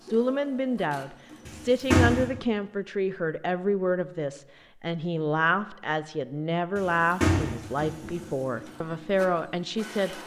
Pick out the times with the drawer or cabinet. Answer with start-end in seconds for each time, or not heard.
1.4-2.3, 6.8-8.3.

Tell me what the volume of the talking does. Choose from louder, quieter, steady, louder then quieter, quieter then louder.
steady.